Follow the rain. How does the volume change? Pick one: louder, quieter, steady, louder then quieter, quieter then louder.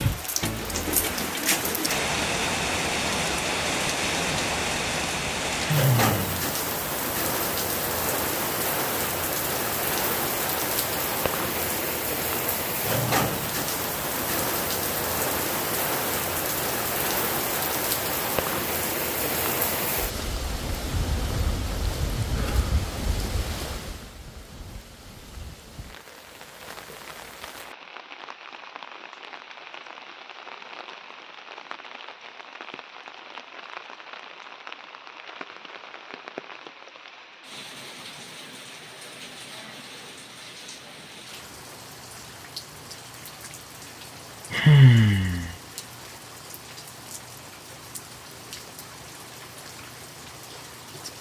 quieter.